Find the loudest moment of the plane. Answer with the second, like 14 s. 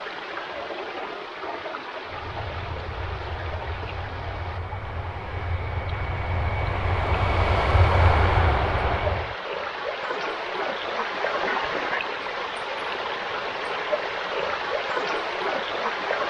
8 s.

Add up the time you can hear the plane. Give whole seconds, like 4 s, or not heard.
7 s.